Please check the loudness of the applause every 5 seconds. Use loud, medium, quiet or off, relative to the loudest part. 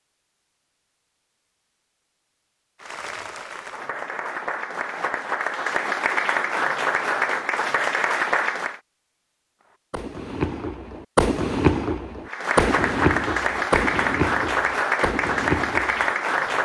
medium, loud, loud, loud.